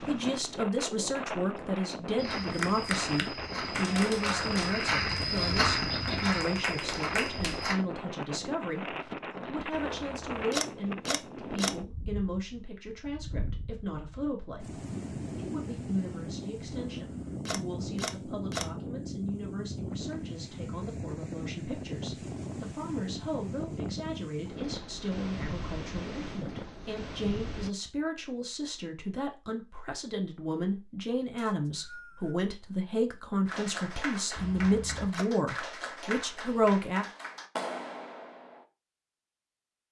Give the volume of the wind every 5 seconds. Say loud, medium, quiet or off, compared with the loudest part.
loud, loud, loud, loud, loud, loud, off, off.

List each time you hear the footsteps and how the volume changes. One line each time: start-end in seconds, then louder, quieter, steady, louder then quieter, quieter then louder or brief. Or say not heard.
2.1-7.8 louder then quieter.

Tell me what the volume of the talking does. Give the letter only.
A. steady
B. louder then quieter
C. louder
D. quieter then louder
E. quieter
D.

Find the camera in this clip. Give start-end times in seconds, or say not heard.
9.7-11.7, 16.9-18.6, 34.4-35.2.